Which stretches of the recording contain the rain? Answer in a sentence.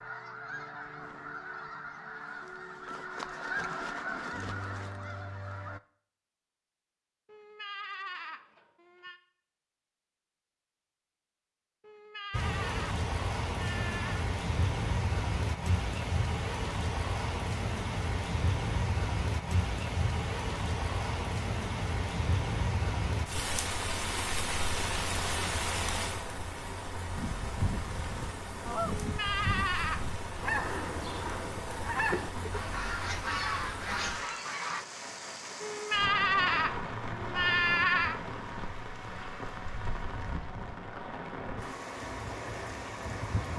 The rain can be heard from 12.3 to 43.5 s.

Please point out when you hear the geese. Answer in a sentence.
The geese can be heard from 0.0 to 5.8 s and from 27.1 to 34.9 s.